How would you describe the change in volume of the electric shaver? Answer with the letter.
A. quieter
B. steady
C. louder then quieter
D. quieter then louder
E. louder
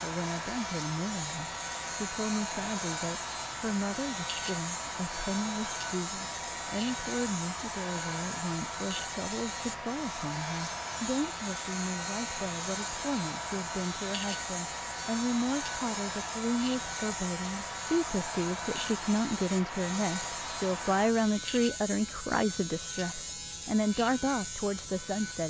B.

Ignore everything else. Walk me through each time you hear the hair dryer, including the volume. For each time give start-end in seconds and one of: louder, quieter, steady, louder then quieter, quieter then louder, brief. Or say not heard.
0.0-21.1 steady.